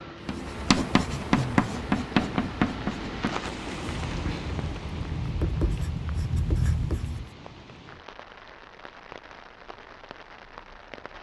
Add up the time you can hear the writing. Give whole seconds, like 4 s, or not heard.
7 s.